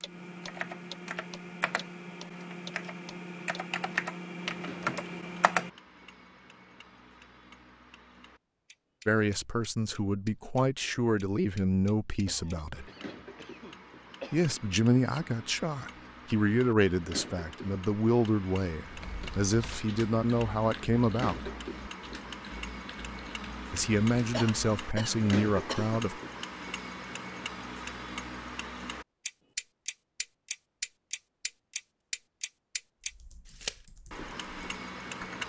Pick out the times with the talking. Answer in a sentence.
The talking can be heard from 9.1 to 12.9 s, from 14.3 to 21.5 s and from 23.7 to 26.2 s.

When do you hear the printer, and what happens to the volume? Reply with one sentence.
The printer can't be heard in this clip.